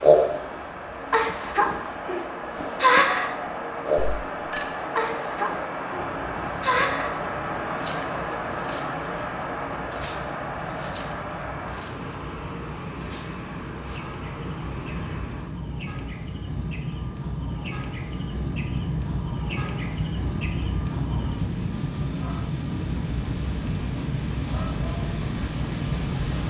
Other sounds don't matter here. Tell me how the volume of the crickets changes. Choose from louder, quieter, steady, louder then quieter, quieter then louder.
quieter then louder.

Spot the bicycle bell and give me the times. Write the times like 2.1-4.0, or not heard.
4.0-4.7.